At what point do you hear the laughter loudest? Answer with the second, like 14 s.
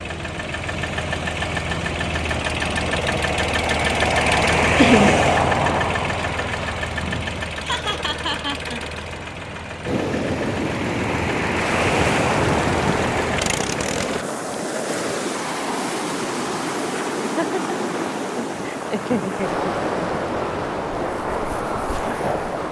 5 s.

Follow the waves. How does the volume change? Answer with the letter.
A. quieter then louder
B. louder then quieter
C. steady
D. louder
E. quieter
C.